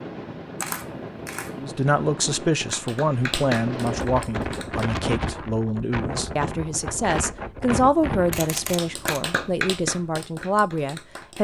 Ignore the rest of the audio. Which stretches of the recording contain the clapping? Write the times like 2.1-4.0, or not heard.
2.6-4.8, 8.6-11.3.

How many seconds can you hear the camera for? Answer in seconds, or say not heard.
2 s.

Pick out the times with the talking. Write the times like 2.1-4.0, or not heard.
1.6-11.3.